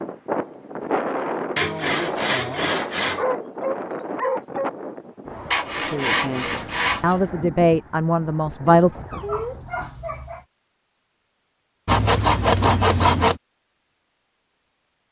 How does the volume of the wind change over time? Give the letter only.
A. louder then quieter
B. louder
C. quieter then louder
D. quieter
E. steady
D.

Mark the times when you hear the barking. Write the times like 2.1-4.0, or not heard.
3.1-4.7, 8.7-10.4.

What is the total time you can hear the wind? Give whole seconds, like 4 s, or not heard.
10 s.